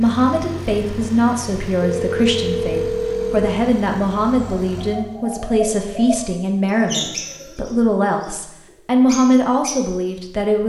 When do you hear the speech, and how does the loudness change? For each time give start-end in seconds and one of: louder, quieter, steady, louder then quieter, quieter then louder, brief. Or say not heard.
0.0-10.6 steady.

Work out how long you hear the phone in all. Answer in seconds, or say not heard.
2 s.